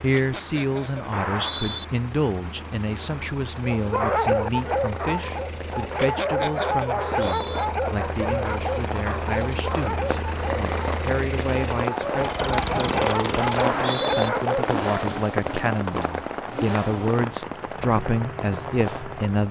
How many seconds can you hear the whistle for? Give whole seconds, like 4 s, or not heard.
2 s.